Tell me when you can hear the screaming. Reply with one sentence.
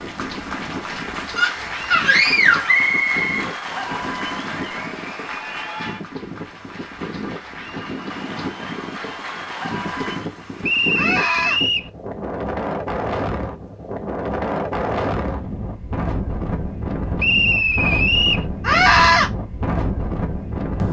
You can hear the screaming from 1.4 to 2.8 s, from 10.9 to 11.6 s and from 18.6 to 19.3 s.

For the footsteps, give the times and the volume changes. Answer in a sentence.
The footsteps can't be heard in this clip.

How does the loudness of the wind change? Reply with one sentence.
The loudness of the wind goes up.